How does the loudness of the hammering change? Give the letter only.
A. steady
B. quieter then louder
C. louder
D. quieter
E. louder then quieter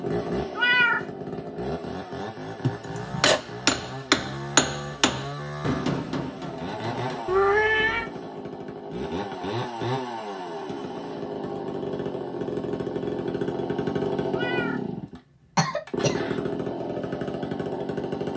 D.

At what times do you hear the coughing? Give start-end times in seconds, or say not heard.
2.6-3.4, 15.6-16.1.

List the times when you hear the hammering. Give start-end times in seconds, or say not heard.
3.2-7.2.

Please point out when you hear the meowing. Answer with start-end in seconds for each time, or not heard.
0.6-1.1, 7.2-8.1, 14.3-14.8.